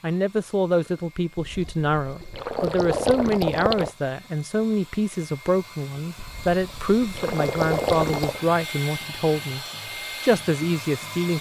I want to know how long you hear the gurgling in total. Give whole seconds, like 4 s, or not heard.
5 s.